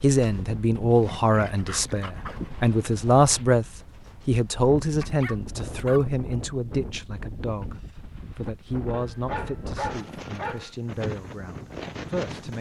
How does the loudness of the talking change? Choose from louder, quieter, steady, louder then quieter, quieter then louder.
quieter.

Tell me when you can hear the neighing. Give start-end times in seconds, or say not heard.
not heard.